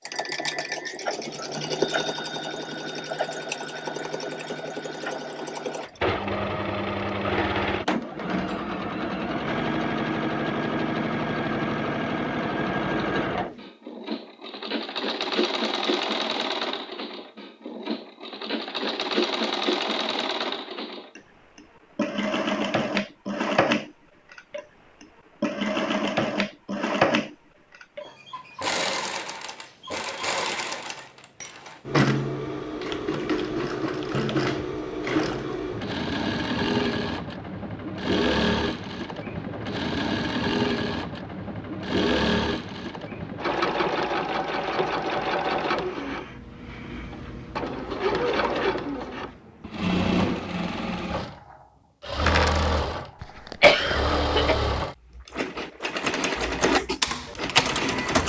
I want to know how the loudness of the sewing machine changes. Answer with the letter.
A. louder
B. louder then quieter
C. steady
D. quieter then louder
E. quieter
C.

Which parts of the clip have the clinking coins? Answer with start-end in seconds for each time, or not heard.
52.1-52.8.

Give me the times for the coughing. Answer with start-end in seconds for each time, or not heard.
53.2-54.6.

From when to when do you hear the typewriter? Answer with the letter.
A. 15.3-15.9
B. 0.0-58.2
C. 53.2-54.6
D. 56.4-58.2
D.